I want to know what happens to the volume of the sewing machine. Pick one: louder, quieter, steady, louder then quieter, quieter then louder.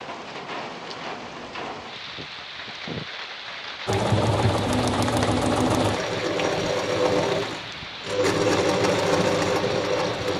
steady.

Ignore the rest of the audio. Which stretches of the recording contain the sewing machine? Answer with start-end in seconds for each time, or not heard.
3.9-10.3.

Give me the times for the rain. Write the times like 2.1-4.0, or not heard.
0.0-10.3.